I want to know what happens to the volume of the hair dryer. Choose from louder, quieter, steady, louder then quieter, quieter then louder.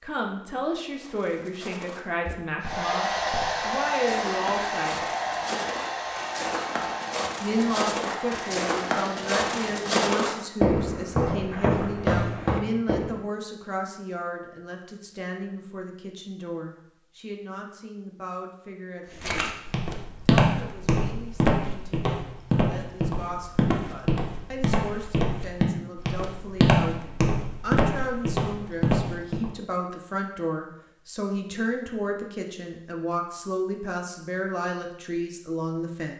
quieter.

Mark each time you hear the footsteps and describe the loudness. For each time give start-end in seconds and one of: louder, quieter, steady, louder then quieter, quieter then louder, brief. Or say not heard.
0.9-13.2 louder
19.1-29.5 steady.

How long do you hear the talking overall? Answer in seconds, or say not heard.
33 s.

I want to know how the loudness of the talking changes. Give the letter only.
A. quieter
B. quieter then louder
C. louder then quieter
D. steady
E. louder
B.